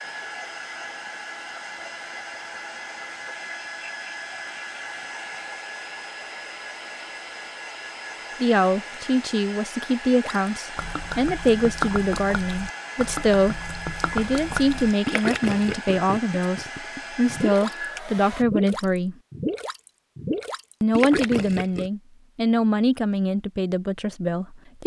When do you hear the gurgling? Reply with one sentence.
The gurgling can be heard from 10.2 to 17.8 s and from 18.4 to 21.9 s.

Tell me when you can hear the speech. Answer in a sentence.
You can hear the speech from 8.4 to 19.1 s and from 20.8 to 24.8 s.